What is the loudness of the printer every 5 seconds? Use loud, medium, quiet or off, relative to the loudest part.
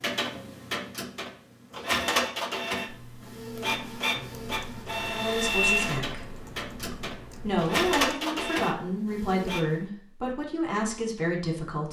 loud, loud, off.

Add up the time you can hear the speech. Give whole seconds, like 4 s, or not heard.
6 s.